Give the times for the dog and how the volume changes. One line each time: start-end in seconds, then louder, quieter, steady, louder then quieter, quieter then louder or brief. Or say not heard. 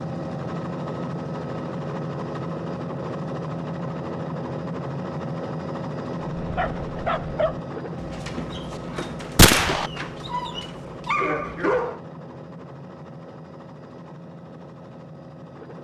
6.3-12.0 quieter then louder.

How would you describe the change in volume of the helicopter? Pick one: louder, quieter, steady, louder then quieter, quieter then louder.
quieter.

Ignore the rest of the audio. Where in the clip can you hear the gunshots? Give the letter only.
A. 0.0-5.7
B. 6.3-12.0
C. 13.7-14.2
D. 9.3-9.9
D.